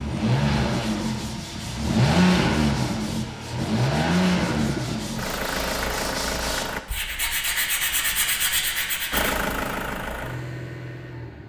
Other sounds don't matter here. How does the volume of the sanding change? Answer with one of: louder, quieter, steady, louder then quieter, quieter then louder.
louder.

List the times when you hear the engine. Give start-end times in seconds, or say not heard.
0.0-6.8, 9.1-11.4.